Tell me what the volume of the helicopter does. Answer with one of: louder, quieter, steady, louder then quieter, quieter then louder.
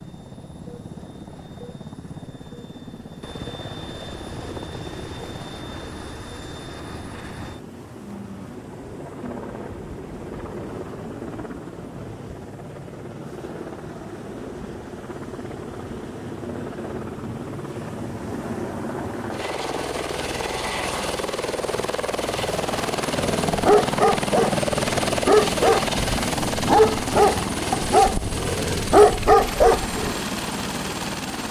louder.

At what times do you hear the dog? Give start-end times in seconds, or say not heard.
23.1-30.1.